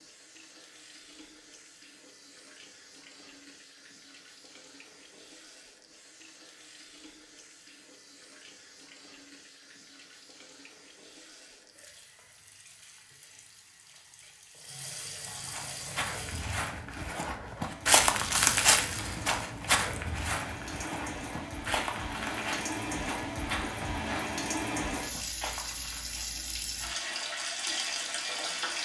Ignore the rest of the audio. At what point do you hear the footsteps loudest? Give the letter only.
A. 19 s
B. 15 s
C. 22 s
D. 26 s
A.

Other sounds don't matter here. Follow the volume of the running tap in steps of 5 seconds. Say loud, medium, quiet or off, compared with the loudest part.
quiet, quiet, quiet, medium, loud, loud.